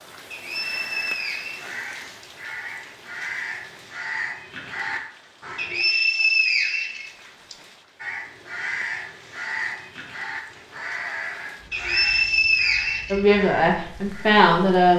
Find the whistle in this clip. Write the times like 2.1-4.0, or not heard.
0.3-2.2, 5.5-7.5, 11.7-13.2.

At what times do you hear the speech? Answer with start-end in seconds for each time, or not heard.
13.1-14.9.